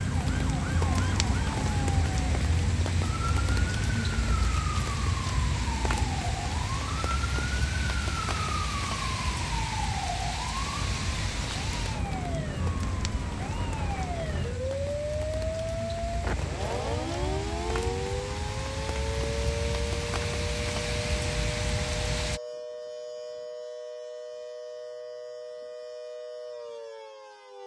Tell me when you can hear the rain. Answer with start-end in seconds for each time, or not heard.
0.0-22.4.